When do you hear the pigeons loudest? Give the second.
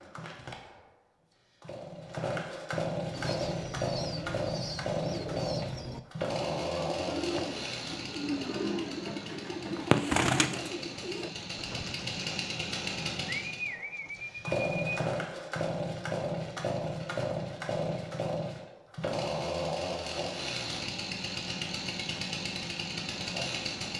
10 s.